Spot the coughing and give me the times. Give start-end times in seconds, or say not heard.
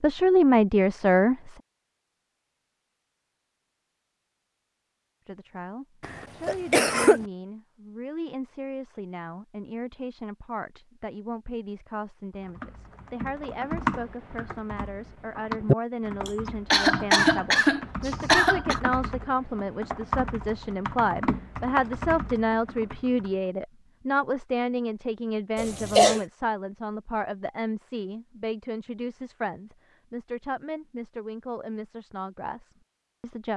6.0-7.2, 16.2-18.8, 25.6-26.2.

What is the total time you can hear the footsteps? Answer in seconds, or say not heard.
not heard.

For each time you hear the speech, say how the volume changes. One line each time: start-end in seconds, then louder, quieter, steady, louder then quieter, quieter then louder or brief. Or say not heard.
0.0-1.6 brief
5.2-33.5 louder then quieter.